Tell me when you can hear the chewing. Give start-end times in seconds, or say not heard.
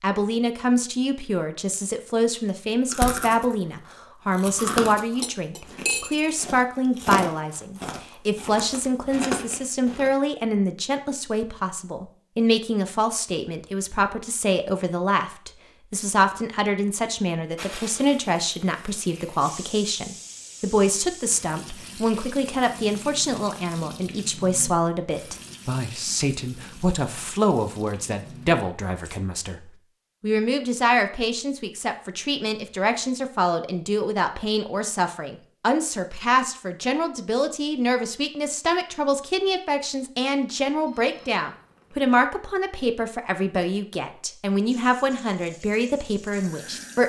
2.9-3.5, 4.3-10.1.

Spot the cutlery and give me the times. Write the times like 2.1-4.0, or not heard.
5.2-6.3.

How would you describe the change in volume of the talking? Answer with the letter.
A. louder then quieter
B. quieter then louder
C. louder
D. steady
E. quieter
D.